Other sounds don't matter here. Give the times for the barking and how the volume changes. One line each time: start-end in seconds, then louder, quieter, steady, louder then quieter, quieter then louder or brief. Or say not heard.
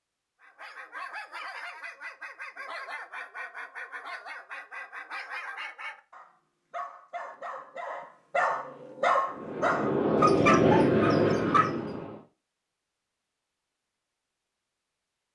0.4-11.8 louder.